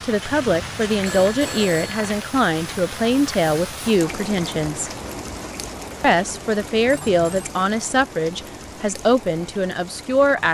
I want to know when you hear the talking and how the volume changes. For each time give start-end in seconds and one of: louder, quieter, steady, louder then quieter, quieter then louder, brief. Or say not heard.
0.0-4.9 steady
6.0-10.5 quieter.